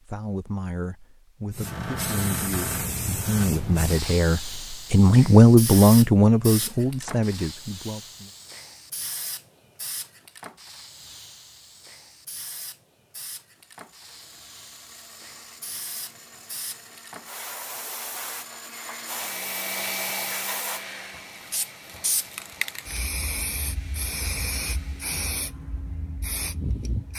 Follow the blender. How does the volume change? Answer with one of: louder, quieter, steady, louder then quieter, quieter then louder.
louder then quieter.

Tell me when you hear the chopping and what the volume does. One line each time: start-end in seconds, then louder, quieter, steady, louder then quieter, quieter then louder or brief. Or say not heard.
not heard.